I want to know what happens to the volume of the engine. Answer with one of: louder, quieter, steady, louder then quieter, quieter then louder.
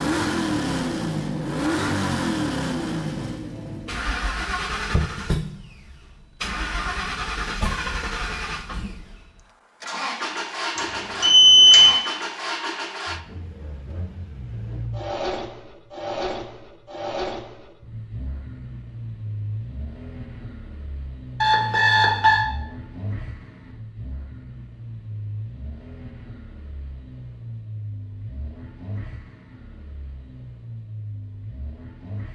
quieter.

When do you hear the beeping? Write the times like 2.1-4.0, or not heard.
10.8-11.9, 21.4-22.4.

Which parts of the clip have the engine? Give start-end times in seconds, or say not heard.
0.0-32.3.